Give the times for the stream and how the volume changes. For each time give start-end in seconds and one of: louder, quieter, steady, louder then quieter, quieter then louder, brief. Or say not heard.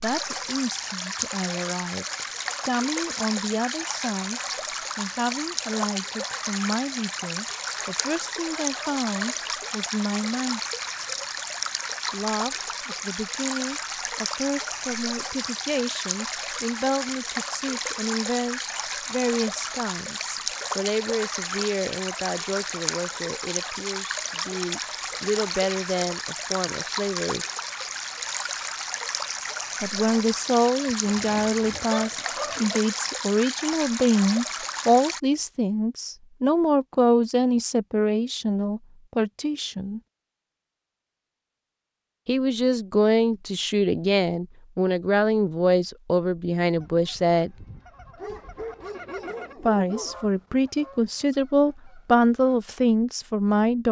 0.0-35.2 steady.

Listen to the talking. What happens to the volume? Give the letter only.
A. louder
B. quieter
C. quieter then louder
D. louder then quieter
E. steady
A.